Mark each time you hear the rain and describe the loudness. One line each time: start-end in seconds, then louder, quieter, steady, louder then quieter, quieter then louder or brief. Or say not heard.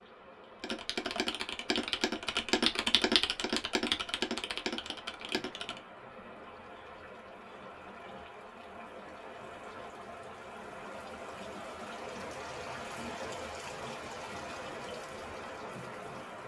0.0-16.4 louder.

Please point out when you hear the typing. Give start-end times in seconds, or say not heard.
0.6-5.8.